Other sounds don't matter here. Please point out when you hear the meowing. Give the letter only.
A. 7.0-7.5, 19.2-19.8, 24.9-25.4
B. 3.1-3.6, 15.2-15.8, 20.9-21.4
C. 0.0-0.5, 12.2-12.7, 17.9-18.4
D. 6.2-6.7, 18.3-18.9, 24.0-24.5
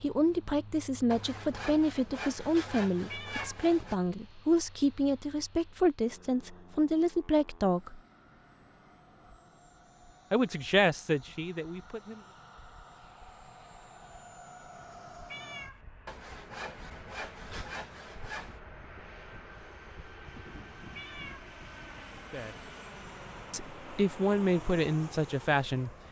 B.